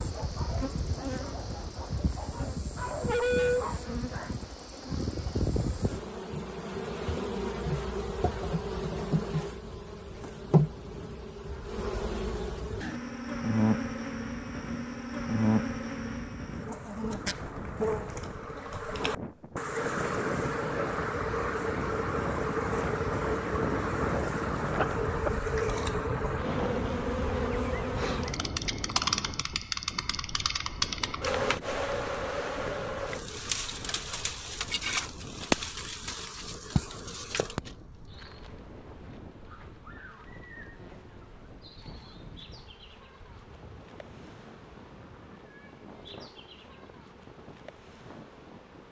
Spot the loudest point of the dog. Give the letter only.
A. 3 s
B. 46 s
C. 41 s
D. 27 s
A.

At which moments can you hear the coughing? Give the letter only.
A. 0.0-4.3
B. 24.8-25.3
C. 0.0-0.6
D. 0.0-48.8
B.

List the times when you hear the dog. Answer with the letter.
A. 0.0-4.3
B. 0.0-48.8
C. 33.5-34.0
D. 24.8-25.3
A.